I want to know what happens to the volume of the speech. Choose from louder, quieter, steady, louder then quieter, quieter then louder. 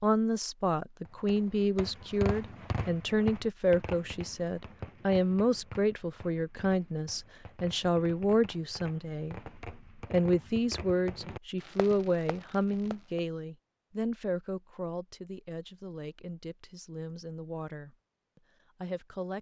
quieter.